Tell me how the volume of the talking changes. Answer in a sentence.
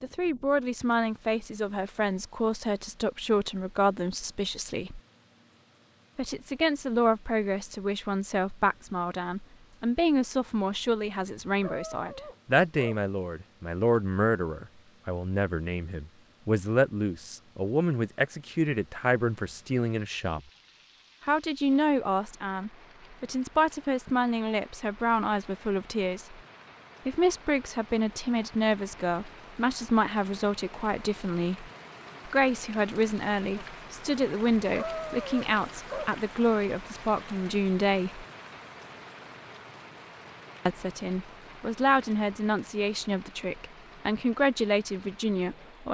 The loudness of the talking stays about the same.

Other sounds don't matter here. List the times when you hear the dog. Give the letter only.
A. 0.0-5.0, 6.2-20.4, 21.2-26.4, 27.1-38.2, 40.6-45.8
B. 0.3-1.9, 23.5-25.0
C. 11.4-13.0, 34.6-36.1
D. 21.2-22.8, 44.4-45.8
C.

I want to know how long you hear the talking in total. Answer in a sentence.
You can hear the talking for 41 seconds altogether.